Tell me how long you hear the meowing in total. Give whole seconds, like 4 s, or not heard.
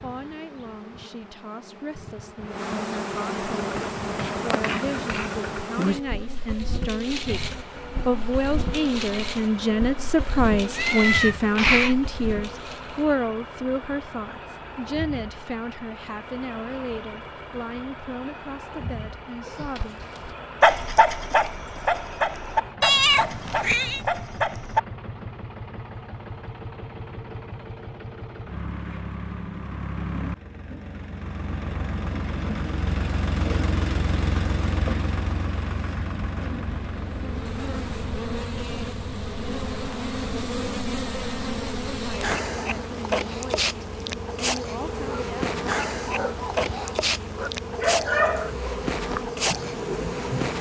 3 s.